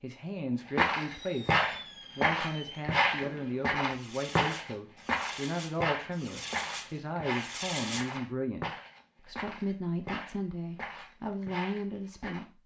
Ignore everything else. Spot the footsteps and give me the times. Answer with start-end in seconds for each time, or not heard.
0.7-12.4.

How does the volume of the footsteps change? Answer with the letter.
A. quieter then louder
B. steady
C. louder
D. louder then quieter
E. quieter
E.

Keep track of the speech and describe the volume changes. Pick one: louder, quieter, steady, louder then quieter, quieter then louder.
steady.